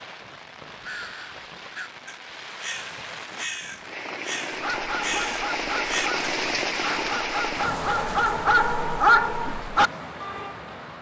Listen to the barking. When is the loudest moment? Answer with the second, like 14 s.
9 s.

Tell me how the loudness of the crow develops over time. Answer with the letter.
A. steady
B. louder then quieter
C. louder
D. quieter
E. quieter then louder
C.